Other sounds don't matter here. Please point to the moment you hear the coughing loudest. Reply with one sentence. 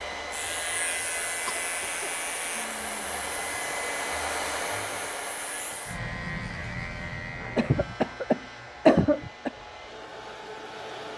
The loudest moment of the coughing is at 9 seconds.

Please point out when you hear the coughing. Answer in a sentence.
You can hear the coughing from 1.4 to 3.4 s and from 7.5 to 9.5 s.